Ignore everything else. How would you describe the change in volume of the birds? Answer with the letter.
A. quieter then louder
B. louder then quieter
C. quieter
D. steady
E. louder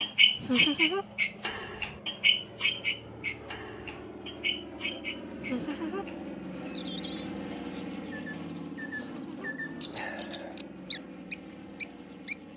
A.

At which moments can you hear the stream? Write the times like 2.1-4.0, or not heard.
not heard.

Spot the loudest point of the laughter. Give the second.
1 s.